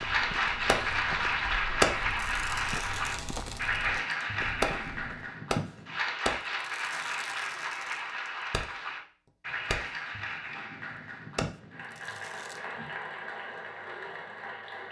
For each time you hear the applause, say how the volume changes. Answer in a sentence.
You can hear the applause from 0.0 to 14.8 s, getting quieter.